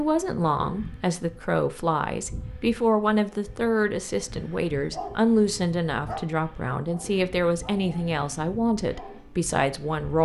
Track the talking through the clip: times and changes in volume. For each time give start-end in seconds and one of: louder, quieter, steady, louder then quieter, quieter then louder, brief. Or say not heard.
0.0-10.2 steady.